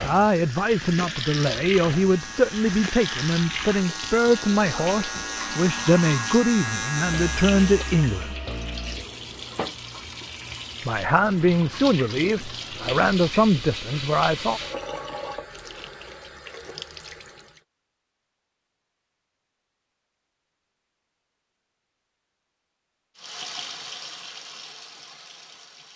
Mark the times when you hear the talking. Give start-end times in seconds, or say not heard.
0.0-8.3, 10.8-14.6.